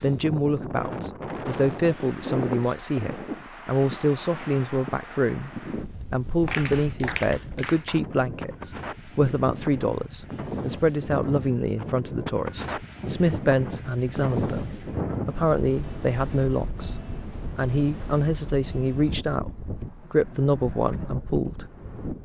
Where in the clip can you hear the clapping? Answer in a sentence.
You can hear the clapping from 6.5 to 8.1 s.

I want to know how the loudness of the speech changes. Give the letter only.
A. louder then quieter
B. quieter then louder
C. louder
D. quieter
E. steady
E.